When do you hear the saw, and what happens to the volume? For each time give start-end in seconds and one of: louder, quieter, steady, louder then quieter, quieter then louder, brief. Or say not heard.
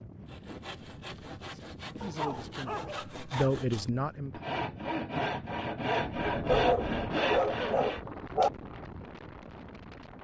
0.2-8.0 louder.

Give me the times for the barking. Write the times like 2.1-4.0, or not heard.
2.0-3.5, 6.5-8.5.